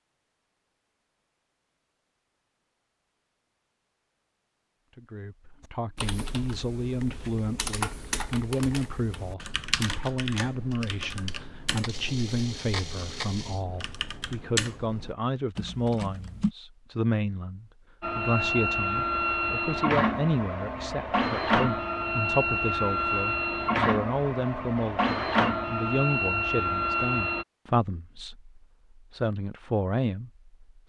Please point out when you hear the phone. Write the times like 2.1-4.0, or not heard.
not heard.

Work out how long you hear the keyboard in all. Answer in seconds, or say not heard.
11 s.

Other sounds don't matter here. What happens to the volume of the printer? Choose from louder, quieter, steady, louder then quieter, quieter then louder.
steady.